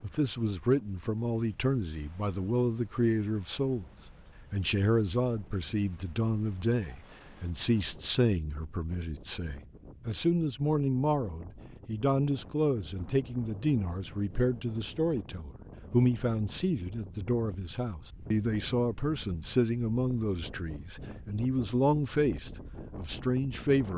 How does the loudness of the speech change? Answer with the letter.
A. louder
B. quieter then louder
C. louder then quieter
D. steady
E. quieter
D.